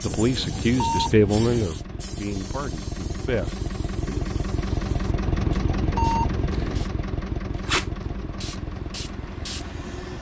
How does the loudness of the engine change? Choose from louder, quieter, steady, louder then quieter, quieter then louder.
louder then quieter.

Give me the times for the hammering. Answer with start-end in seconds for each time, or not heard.
not heard.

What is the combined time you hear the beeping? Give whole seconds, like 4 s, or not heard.
3 s.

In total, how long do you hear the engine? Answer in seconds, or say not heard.
10 s.